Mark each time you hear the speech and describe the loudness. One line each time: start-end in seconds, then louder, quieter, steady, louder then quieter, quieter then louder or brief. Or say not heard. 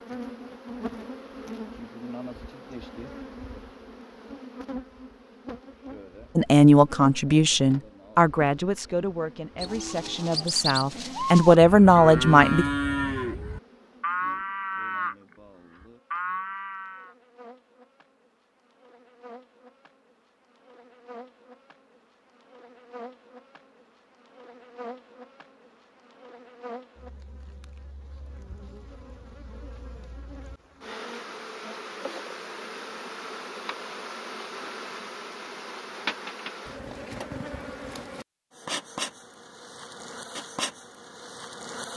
6.3-12.7 quieter then louder.